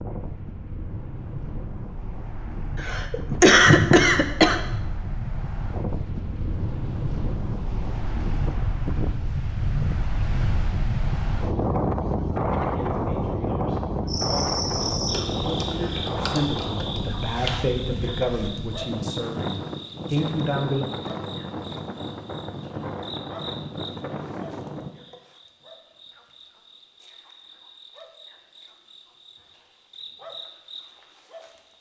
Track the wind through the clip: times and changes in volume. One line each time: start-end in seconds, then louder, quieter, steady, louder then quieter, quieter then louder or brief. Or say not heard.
0.0-24.9 louder then quieter.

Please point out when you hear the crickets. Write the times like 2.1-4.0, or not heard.
14.1-31.7.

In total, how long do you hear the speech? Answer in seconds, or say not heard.
8 s.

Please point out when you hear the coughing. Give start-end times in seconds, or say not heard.
2.8-4.8.